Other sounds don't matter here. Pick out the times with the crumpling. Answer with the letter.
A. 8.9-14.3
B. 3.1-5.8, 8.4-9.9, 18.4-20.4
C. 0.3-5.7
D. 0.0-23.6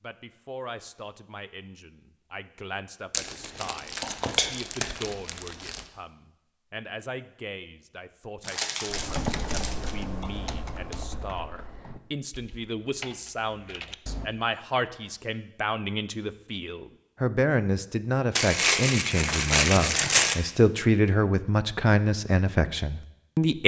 B.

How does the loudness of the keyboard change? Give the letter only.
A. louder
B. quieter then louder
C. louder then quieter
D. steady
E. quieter
B.